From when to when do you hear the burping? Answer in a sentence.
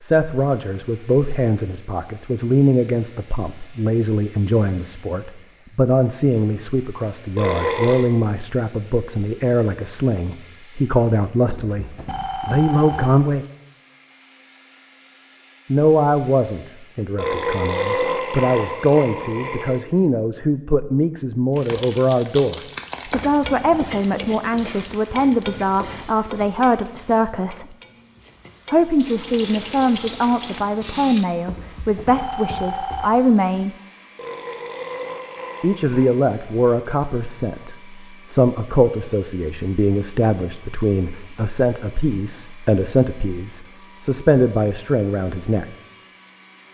The burping can be heard from 7.3 to 8.1 s, from 17.1 to 19.8 s and from 34.1 to 36.3 s.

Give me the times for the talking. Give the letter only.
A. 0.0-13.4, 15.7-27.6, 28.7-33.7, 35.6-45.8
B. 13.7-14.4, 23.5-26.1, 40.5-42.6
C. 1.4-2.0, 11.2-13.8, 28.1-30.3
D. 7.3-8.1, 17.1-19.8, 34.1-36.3
A.